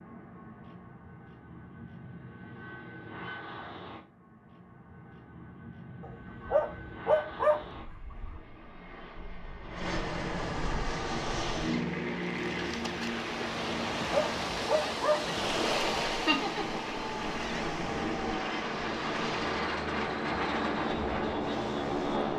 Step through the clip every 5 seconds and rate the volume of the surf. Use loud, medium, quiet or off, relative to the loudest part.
off, off, loud, loud, medium.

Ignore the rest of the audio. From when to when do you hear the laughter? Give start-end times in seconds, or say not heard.
16.1-16.8.